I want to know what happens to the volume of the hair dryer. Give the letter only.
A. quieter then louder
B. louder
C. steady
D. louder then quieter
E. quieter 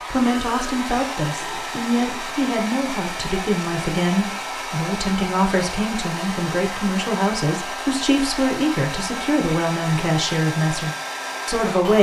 C.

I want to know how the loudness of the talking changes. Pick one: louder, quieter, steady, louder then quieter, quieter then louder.
steady.